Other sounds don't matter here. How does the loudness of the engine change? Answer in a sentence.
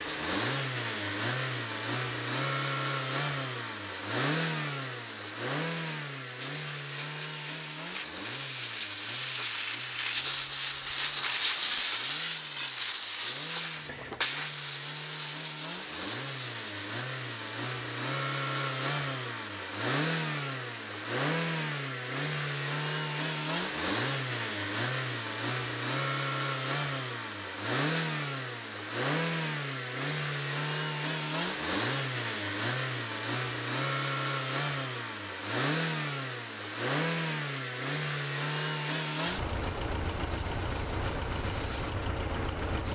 The volume of the engine goes down, then up.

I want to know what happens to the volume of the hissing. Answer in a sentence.
The volume of the hissing goes up, then down.